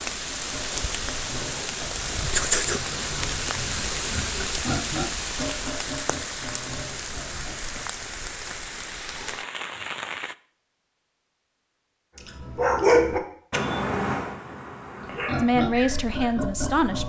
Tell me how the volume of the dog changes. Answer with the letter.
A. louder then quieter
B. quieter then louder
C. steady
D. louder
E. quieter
E.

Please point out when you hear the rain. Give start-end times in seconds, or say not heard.
0.0-10.3.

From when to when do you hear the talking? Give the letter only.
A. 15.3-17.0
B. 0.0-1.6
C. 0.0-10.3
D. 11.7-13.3
A.